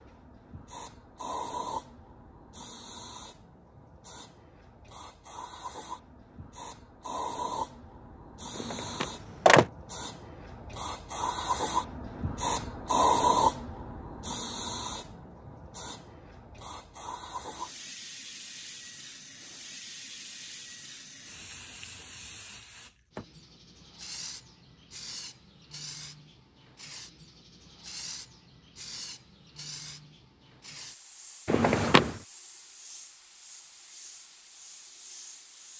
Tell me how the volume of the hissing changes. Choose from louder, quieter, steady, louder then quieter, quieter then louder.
louder then quieter.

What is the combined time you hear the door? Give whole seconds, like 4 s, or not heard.
2 s.